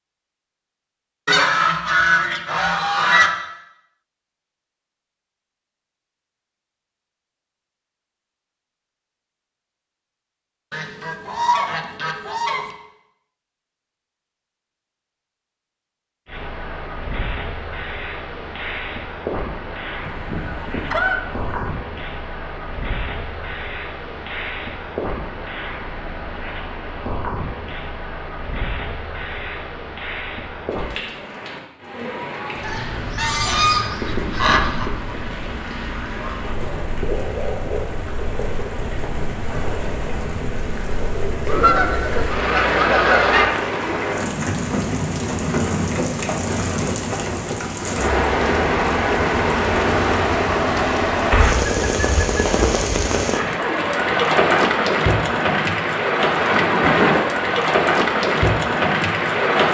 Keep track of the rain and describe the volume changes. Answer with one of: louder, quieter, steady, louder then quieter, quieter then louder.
louder.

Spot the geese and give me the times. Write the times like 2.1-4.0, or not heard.
1.2-3.3, 10.7-12.7, 20.0-21.7, 32.6-34.9, 41.5-43.5, 51.6-53.4.